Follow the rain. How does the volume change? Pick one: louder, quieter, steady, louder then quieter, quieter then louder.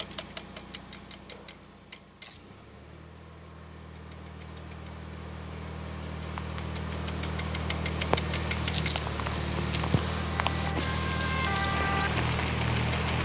louder.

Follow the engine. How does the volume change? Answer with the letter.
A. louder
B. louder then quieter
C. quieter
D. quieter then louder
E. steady
A.